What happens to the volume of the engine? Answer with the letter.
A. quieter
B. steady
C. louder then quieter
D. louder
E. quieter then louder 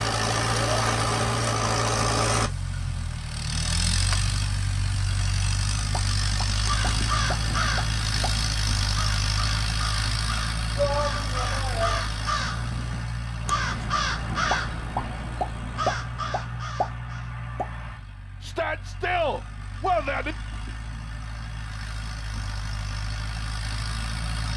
A.